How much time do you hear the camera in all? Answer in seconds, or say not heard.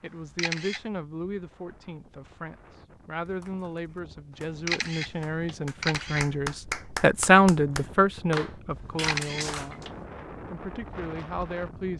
3 s.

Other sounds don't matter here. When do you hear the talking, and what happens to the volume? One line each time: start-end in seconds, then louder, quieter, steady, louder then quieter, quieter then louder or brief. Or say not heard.
0.0-11.9 louder then quieter.